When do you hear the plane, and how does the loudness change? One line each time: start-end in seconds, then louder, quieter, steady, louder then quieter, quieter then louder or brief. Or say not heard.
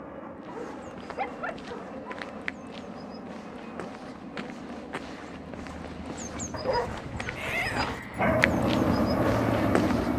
0.0-10.1 louder.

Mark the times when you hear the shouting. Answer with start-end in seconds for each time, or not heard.
7.3-8.0.